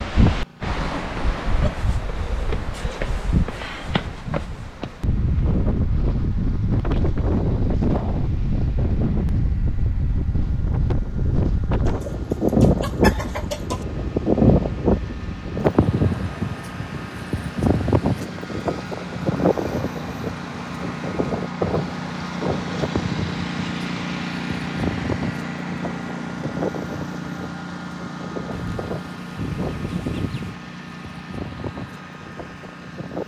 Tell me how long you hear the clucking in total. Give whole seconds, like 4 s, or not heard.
4 s.